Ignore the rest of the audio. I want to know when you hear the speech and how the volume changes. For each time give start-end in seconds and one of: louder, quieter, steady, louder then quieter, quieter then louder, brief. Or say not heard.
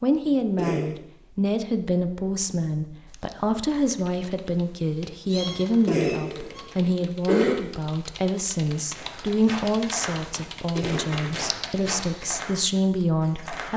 0.0-13.7 steady.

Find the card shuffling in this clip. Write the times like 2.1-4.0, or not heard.
not heard.